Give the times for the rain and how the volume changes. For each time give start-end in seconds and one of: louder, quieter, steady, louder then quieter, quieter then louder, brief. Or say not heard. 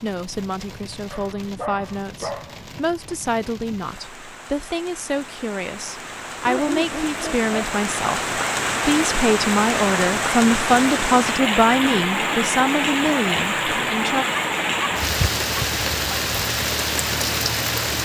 0.0-18.0 louder.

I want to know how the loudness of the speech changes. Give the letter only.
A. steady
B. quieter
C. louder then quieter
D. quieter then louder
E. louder
E.